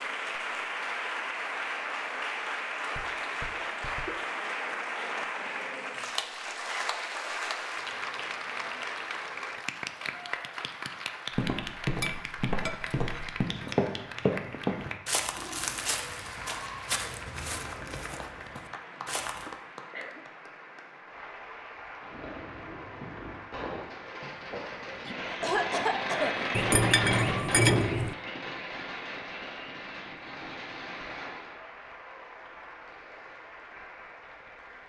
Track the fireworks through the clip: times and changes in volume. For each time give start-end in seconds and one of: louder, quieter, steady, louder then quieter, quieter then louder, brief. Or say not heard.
22.0-31.6 louder then quieter.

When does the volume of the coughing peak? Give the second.
26 s.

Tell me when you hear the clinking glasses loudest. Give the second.
28 s.